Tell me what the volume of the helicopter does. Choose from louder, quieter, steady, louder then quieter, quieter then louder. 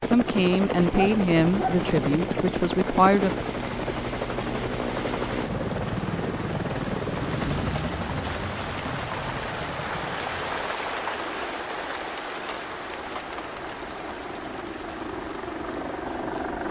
quieter then louder.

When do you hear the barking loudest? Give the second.
1 s.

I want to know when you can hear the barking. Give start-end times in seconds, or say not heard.
0.9-2.4.